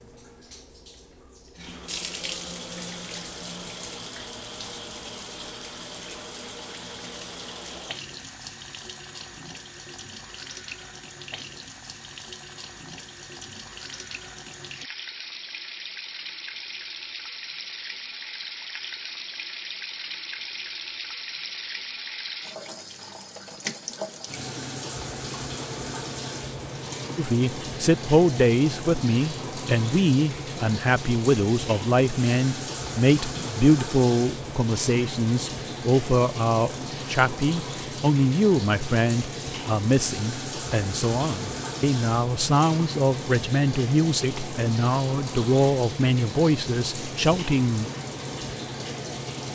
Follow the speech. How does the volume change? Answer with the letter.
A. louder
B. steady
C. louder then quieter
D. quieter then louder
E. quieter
B.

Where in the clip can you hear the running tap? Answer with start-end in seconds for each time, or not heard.
0.0-49.4.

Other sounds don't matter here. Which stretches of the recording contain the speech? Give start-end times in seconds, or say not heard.
27.1-47.9.